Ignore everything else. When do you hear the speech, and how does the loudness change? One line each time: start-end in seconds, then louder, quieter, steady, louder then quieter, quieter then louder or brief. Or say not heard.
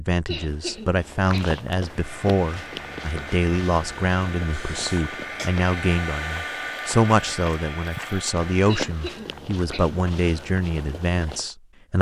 0.0-11.9 steady.